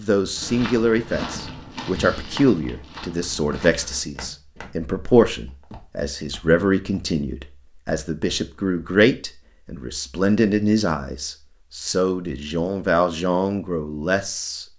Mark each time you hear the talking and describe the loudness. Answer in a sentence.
The talking can be heard from 0.0 to 14.7 s, at a steady volume.